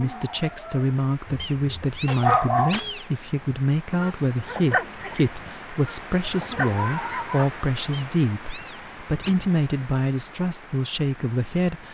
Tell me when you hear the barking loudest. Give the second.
2 s.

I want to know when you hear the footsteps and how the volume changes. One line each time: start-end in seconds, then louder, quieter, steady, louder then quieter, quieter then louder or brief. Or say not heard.
not heard.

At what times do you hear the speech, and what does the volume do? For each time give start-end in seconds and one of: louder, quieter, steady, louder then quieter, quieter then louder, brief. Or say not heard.
0.0-11.8 steady.